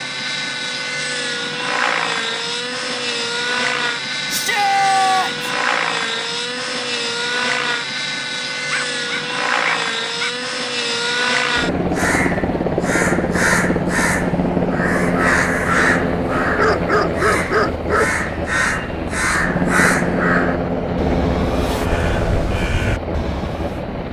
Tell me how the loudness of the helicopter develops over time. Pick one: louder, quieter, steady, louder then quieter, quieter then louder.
steady.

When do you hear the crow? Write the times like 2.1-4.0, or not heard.
11.8-23.8.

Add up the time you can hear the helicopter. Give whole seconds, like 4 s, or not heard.
24 s.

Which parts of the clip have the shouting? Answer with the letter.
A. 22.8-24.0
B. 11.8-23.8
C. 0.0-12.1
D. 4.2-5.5
D.